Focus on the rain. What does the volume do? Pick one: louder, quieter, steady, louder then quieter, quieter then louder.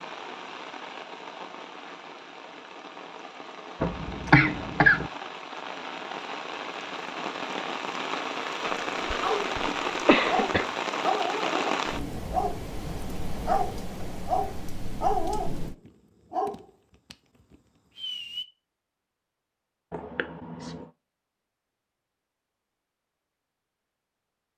louder then quieter.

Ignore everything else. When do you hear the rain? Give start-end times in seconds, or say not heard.
0.0-15.8.